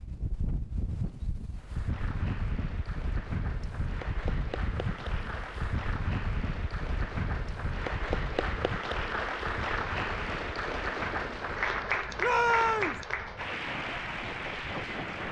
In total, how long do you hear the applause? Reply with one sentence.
You can hear the applause for 14 seconds altogether.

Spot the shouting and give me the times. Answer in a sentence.
You can hear the shouting from 12.2 to 13.0 s.